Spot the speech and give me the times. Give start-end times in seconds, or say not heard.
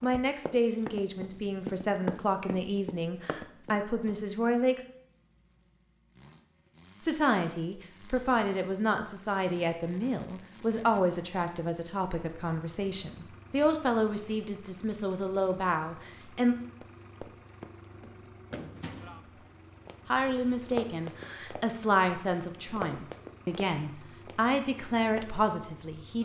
0.0-4.8, 7.0-16.6, 20.1-26.2.